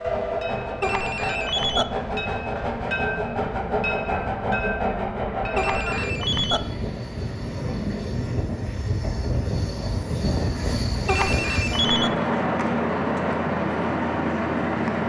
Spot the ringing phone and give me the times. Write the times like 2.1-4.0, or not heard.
0.8-1.9, 5.5-6.6, 11.1-12.1.